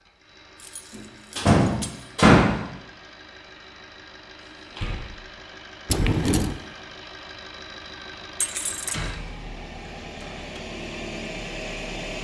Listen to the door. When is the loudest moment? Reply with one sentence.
The volume of the door peaks at 2 seconds.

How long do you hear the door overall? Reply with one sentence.
You can hear the door for 4 seconds altogether.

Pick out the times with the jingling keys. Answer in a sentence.
The jingling keys can be heard from 0.6 to 2.1 s, from 5.8 to 6.5 s and from 8.4 to 9.1 s.